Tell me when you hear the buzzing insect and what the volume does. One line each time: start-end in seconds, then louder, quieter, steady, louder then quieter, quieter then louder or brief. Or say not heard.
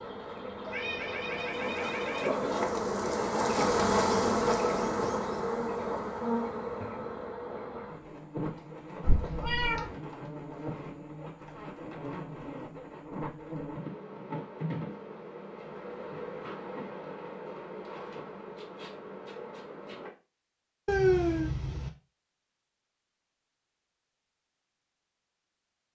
0.0-20.1 quieter.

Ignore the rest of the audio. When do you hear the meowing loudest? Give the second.
21 s.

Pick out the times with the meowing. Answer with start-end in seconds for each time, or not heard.
0.7-2.3, 9.0-9.9, 20.9-21.9.